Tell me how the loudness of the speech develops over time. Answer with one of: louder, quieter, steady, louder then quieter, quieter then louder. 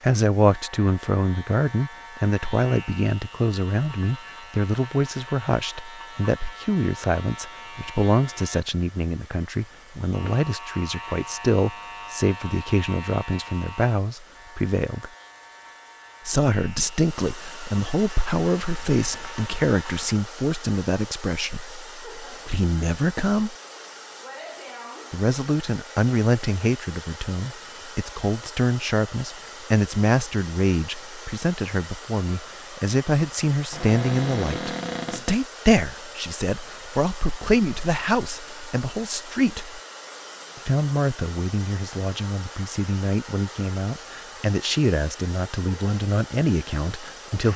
steady.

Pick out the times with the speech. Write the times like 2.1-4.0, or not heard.
0.0-15.1, 16.2-23.6, 25.1-39.8, 40.6-47.5.